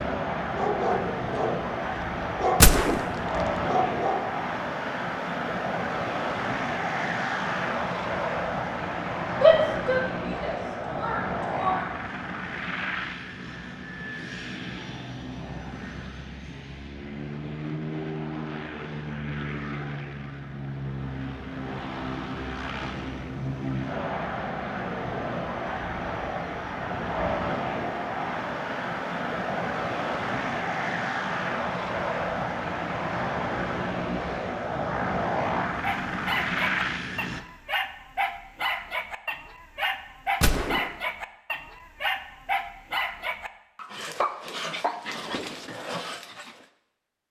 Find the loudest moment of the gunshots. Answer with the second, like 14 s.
3 s.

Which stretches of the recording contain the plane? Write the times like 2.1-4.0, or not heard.
0.0-37.4.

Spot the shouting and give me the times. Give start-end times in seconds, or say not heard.
9.4-11.8.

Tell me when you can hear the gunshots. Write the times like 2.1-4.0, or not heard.
2.6-3.0, 40.4-40.9.